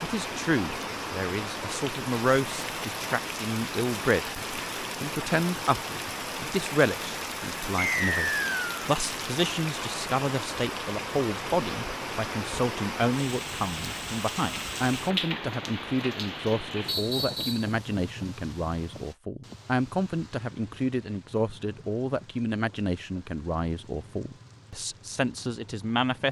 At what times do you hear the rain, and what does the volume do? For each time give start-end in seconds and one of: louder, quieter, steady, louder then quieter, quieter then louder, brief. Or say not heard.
0.0-26.2 quieter.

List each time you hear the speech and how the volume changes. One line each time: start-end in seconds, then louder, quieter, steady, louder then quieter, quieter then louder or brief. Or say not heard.
0.0-26.2 steady.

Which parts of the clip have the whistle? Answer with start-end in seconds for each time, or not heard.
7.8-8.7, 16.9-17.7.